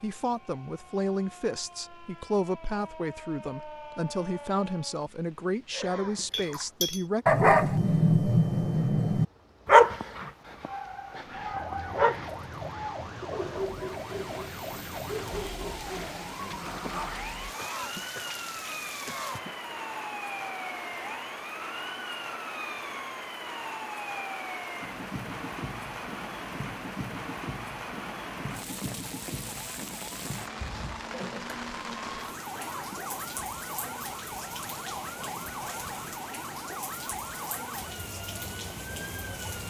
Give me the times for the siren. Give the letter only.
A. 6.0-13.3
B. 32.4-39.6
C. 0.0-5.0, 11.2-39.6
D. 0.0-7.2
C.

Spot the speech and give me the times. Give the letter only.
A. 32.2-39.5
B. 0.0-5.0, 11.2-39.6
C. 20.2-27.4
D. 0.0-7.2
D.